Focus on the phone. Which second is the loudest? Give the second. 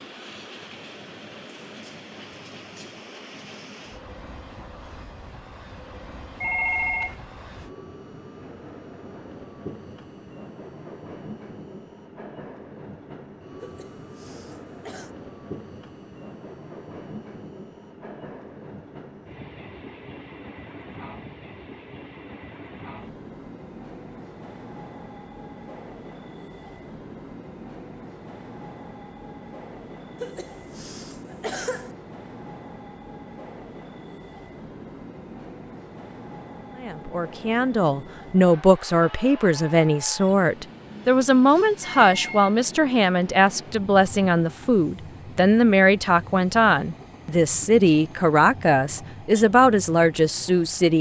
7 s.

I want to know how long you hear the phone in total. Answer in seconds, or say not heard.
2 s.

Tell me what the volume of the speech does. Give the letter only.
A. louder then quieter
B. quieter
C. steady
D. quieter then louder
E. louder
C.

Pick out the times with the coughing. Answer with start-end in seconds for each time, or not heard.
13.6-15.2, 30.2-31.9.